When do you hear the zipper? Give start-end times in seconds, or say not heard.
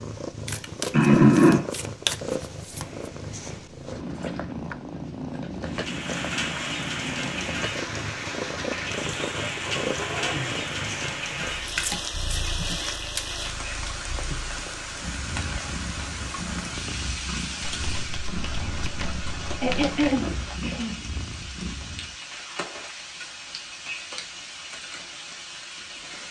not heard.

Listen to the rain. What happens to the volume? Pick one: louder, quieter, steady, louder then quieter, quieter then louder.
quieter.